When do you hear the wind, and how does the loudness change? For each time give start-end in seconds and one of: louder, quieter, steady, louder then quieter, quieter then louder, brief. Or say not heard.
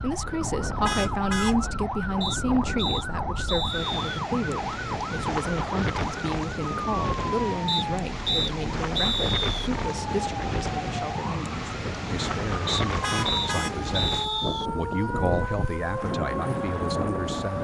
0.0-17.5 steady.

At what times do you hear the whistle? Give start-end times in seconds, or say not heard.
2.2-4.0, 7.7-9.7, 12.7-14.7.